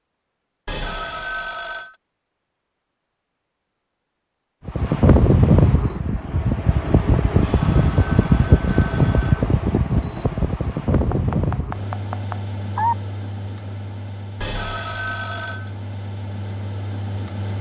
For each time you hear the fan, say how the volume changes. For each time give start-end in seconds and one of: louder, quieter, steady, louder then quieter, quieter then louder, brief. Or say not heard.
4.7-17.5 quieter.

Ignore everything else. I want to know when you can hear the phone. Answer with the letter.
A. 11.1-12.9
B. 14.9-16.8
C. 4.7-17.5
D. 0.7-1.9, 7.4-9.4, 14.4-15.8
D.